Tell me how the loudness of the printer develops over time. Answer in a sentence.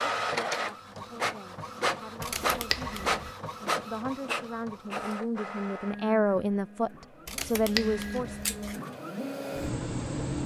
The loudness of the printer goes down, then up.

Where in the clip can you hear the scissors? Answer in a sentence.
The scissors can be heard from 2.2 to 3.3 s and from 7.2 to 8.8 s.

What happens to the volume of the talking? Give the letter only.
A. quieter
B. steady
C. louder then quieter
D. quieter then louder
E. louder
E.